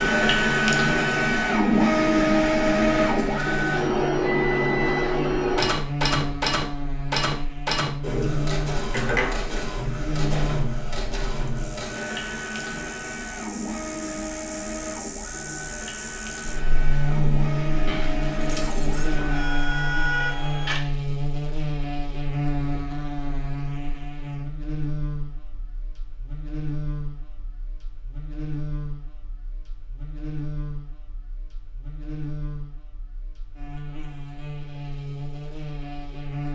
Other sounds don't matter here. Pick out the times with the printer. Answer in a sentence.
The printer can be heard from 0.0 to 20.9 s.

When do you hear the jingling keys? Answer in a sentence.
You can hear the jingling keys from 17.9 to 19.2 s.